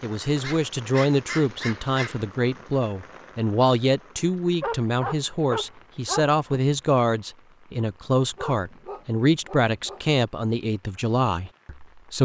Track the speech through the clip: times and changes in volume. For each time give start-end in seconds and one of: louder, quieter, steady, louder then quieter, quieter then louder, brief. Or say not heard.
0.0-12.1 steady.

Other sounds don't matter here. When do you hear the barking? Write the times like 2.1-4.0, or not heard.
0.4-2.2, 4.6-6.6, 8.3-10.0.